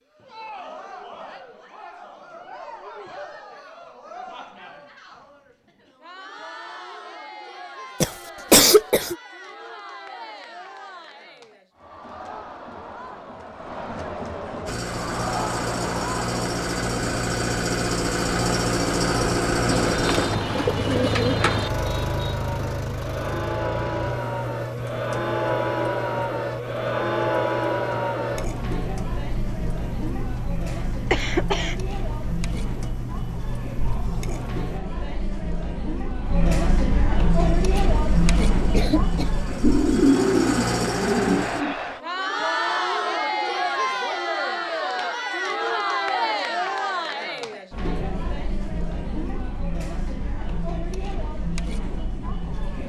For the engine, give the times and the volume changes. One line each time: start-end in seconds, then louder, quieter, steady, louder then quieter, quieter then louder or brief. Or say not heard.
14.7-34.8 quieter
37.2-41.6 louder.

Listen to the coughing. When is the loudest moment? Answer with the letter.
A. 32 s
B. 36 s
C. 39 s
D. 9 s
D.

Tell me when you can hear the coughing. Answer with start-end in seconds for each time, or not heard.
8.0-9.2, 31.1-31.8, 37.8-39.3.